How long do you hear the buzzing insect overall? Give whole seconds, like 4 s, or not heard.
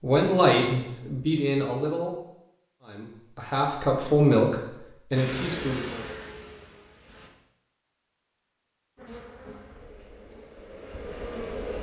5 s.